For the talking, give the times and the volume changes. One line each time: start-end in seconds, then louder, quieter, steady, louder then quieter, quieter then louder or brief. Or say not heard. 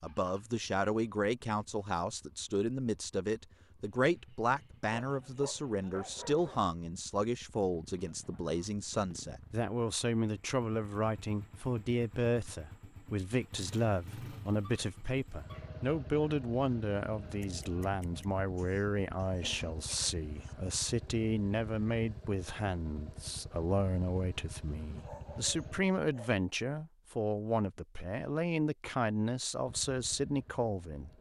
0.0-31.1 steady.